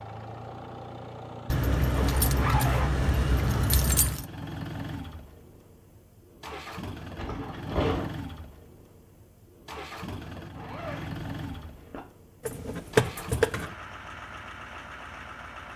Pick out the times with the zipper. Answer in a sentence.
The zipper can be heard from 1.9 to 3.0 s, from 7.2 to 8.1 s and from 10.6 to 12.0 s.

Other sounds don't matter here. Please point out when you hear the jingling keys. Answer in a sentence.
The jingling keys can be heard from 1.4 to 4.2 s and from 12.4 to 13.7 s.